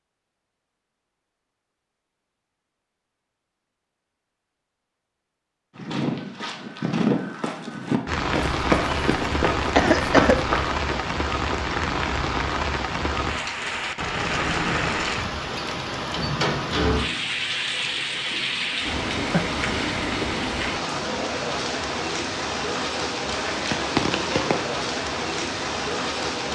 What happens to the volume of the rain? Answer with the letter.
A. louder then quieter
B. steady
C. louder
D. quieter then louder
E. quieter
B.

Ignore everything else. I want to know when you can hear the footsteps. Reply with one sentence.
You can hear the footsteps from 5.8 to 11.0 s.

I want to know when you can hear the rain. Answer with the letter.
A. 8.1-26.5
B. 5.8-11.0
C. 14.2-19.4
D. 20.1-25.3
A.